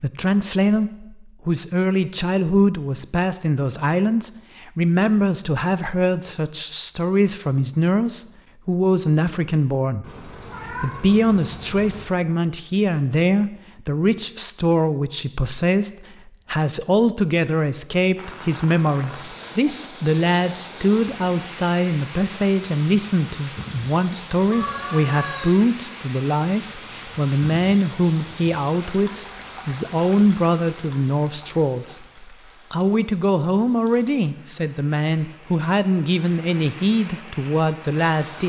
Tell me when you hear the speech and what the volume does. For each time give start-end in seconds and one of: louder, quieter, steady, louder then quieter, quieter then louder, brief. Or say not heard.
0.0-38.4 steady.